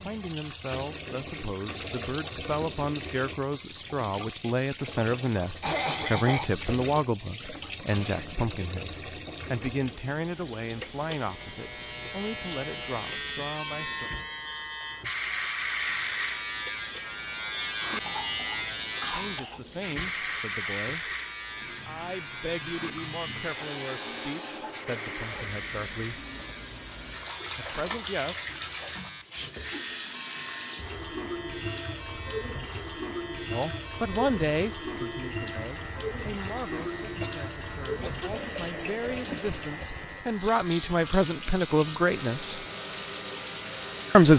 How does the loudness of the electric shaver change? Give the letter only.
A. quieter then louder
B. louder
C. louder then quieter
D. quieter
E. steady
D.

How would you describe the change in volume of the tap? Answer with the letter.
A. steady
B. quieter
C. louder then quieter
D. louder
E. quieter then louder
E.